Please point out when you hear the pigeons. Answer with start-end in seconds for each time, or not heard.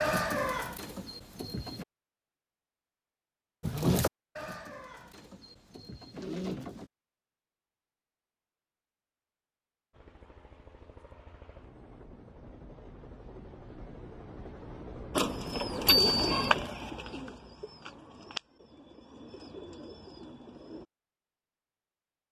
0.0-1.9, 3.6-6.9, 15.2-20.9.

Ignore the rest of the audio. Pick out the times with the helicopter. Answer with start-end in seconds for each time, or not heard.
9.9-16.7.